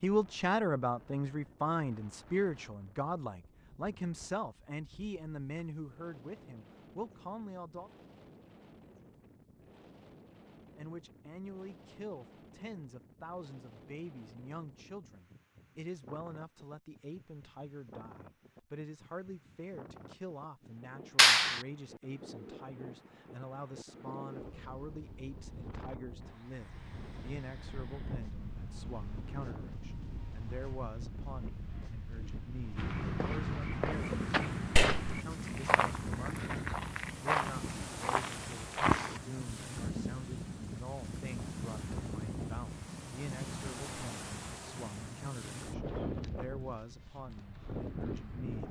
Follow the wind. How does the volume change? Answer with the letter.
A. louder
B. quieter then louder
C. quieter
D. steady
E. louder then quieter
A.